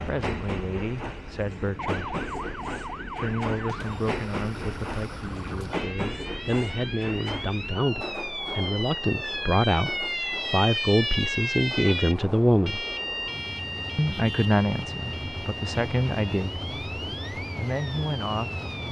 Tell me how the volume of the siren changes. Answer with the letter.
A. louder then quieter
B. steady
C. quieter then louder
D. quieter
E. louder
A.